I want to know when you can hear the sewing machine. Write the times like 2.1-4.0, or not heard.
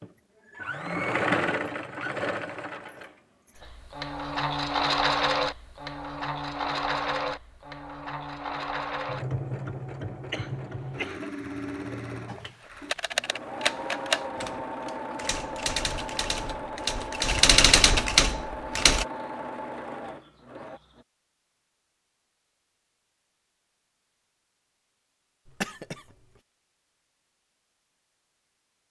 0.0-21.1.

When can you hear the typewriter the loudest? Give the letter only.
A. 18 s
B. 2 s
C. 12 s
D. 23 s
A.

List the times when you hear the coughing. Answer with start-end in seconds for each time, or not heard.
10.3-11.3, 25.4-26.1.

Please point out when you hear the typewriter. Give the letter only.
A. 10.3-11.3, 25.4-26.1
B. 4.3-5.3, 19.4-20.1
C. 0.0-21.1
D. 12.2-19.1
D.